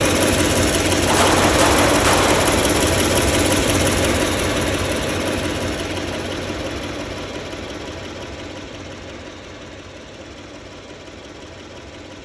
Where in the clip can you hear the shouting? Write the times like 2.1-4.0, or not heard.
not heard.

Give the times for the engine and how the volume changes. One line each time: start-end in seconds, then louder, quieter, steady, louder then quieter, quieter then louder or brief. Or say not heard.
0.0-12.1 quieter.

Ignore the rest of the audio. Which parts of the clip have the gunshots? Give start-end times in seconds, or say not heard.
1.1-2.7.